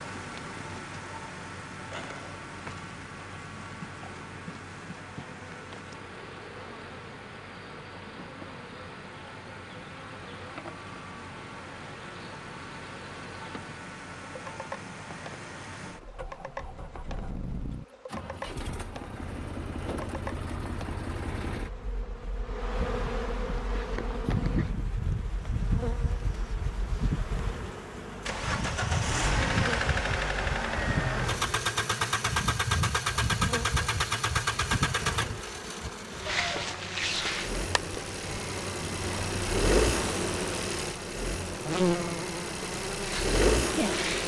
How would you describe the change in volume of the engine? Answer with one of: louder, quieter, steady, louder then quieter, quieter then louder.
louder.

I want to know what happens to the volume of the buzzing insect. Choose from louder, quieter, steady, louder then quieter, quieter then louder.
louder.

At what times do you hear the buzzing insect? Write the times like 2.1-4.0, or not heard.
0.0-44.2.